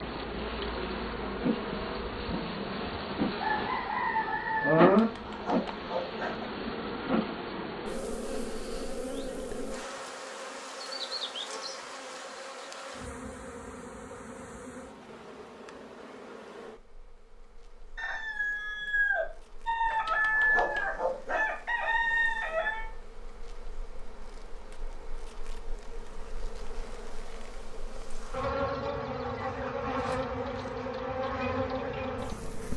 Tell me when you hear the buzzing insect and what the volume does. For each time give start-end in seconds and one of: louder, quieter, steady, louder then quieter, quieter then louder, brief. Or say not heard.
0.0-32.7 quieter then louder.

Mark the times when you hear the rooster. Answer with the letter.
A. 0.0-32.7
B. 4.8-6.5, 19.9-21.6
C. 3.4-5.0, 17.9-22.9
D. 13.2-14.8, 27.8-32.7
C.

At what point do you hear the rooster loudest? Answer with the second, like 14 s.
5 s.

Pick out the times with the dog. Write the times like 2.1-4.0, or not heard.
4.8-6.5, 19.9-21.6.